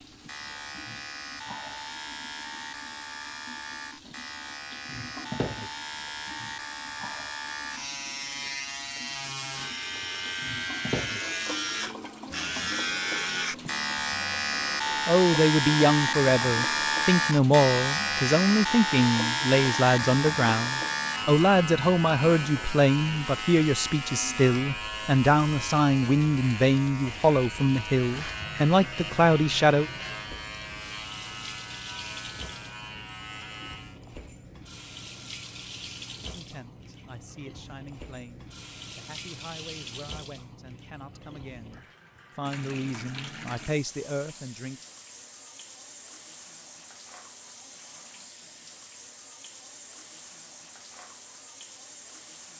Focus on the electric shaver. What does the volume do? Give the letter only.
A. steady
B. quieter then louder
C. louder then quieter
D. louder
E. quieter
C.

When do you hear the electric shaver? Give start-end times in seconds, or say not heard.
0.1-34.0.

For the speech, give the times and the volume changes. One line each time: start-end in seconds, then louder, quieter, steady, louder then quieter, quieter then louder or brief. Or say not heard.
15.1-29.9 steady
36.3-44.8 louder.